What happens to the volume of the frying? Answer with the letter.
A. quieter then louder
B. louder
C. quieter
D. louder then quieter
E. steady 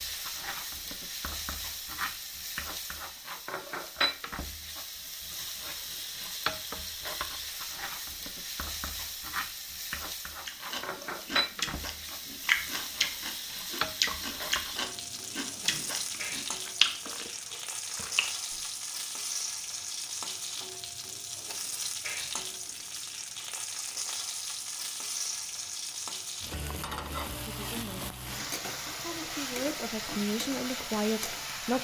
E.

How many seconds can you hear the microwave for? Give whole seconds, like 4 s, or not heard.
not heard.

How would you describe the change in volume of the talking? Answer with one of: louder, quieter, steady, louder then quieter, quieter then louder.
louder.